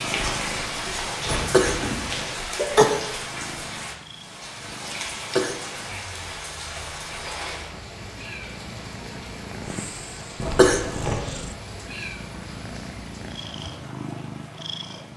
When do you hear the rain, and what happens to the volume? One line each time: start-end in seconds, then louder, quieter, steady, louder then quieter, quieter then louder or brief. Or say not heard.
0.0-15.1 quieter.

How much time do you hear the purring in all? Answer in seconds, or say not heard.
15 s.